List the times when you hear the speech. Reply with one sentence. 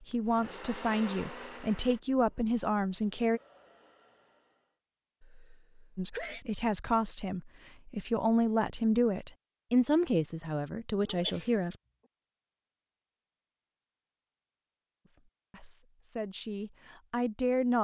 The speech can be heard from 0.1 to 3.4 s, from 6.0 to 11.8 s and from 15.1 to 17.7 s.